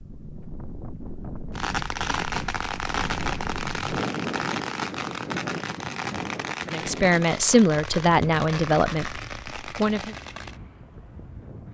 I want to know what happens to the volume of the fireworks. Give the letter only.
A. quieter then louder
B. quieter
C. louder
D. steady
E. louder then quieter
B.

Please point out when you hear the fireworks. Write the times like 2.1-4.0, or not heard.
1.6-10.6.